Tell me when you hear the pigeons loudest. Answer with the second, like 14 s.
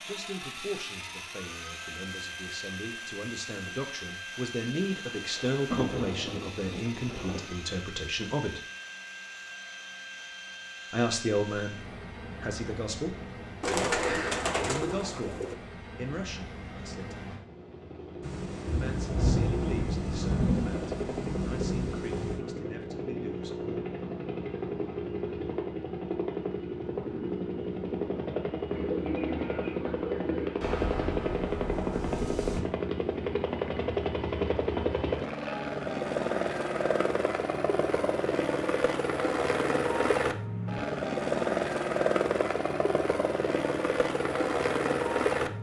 14 s.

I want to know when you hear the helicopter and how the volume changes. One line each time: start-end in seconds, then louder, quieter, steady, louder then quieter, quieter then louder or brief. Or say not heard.
0.0-45.5 louder.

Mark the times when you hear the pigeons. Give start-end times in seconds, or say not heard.
13.6-15.6, 28.7-30.6.